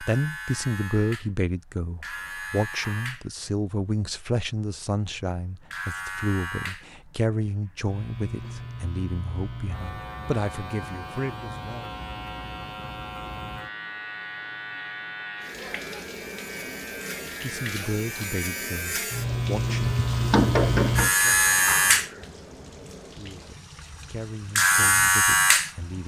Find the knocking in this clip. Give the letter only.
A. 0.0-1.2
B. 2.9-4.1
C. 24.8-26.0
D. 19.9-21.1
D.